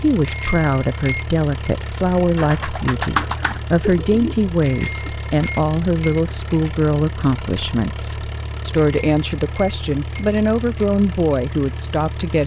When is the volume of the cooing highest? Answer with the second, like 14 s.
3 s.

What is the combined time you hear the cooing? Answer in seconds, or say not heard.
3 s.